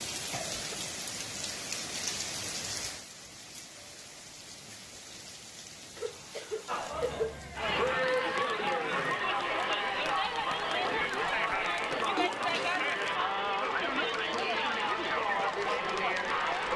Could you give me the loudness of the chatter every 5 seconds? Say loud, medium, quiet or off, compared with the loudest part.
off, loud, loud, loud.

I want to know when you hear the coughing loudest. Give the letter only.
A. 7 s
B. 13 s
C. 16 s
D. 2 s
A.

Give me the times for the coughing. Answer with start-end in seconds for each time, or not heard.
0.3-0.9, 6.0-7.4, 12.2-12.8.